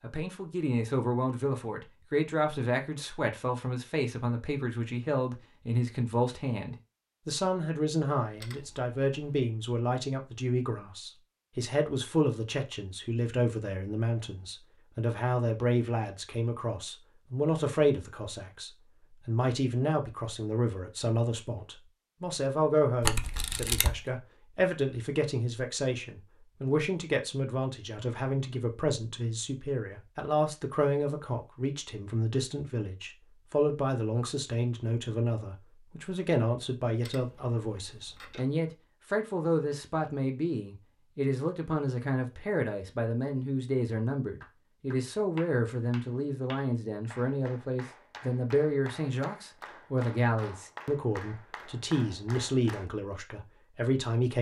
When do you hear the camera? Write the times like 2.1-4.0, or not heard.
8.3-9.3, 23.0-23.9, 37.0-38.4.